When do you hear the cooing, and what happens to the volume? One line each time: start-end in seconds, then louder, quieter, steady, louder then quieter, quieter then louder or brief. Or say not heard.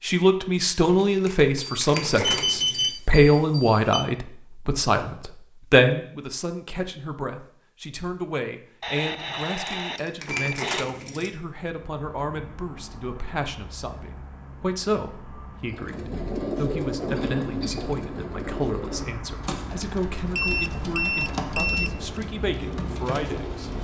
15.7-23.7 quieter.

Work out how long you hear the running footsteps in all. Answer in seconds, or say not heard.
not heard.